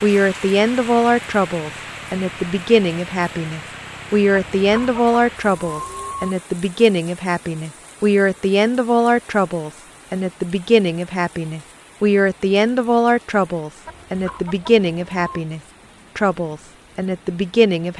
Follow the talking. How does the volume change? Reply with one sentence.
The loudness of the talking stays about the same.